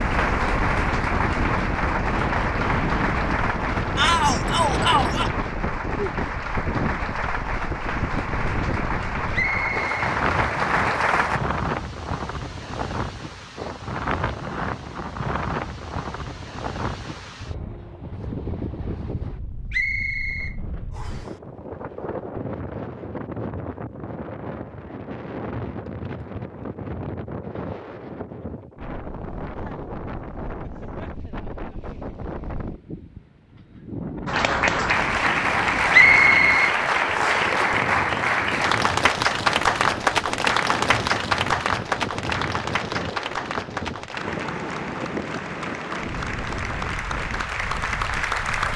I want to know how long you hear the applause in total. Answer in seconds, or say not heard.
26 s.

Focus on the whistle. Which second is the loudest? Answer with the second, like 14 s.
36 s.